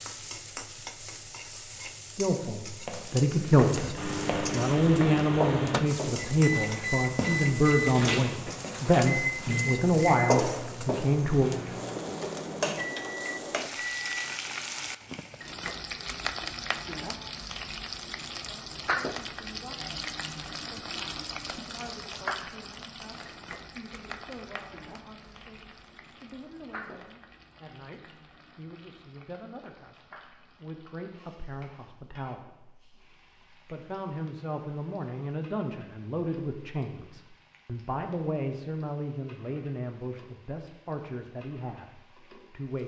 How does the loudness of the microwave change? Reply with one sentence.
The loudness of the microwave goes down.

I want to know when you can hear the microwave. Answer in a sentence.
The microwave can be heard from 4.0 to 14.2 s.